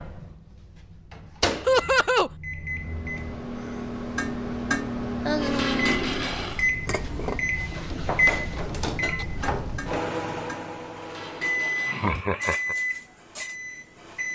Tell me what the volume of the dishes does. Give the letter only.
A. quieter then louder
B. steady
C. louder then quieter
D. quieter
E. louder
D.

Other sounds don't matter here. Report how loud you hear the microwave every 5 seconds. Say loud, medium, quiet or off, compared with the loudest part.
medium, loud, loud.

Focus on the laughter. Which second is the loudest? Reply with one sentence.
The volume of the laughter peaks at 2 seconds.